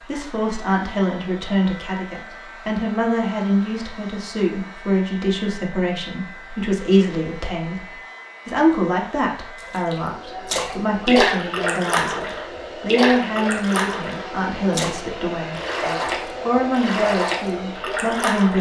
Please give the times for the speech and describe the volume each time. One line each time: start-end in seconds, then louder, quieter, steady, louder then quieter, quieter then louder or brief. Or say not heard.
0.0-18.5 steady.